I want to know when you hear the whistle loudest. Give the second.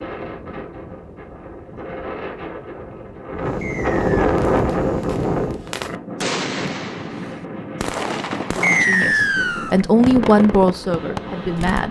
9 s.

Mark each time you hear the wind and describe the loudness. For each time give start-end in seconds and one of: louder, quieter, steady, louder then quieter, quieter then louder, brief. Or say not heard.
0.0-11.8 louder then quieter.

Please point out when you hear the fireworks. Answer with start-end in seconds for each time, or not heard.
4.3-11.8.